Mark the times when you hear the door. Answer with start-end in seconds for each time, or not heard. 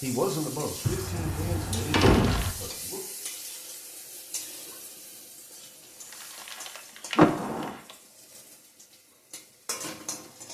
0.8-2.5, 7.2-7.8.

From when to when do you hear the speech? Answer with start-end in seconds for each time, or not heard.
0.0-3.0.